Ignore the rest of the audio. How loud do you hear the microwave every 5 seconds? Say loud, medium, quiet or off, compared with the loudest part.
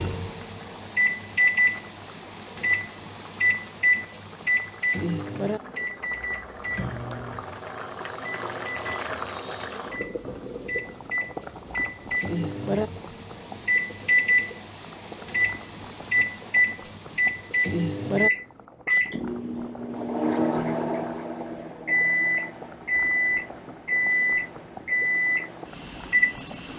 loud, medium, loud, loud, loud, loud.